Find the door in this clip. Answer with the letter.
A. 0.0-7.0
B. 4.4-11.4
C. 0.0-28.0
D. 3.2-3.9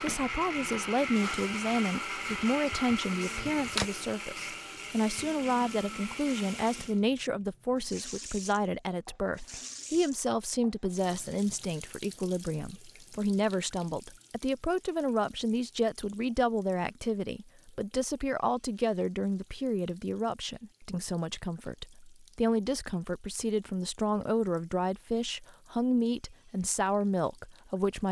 D.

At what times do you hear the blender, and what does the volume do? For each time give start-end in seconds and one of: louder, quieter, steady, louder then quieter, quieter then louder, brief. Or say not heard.
0.0-7.0 quieter.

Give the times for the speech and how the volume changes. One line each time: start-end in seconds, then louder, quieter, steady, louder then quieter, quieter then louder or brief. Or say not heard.
0.0-28.0 steady.